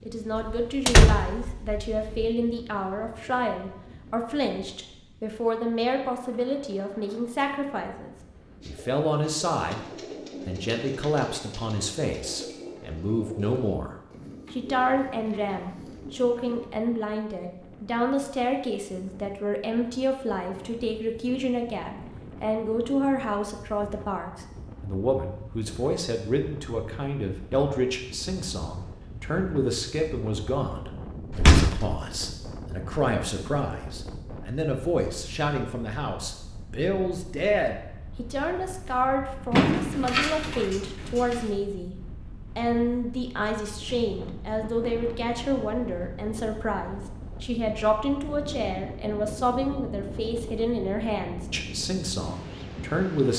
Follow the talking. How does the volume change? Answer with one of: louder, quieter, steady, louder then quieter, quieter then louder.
steady.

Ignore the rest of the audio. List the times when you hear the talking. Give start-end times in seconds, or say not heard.
0.0-9.8, 10.4-53.3.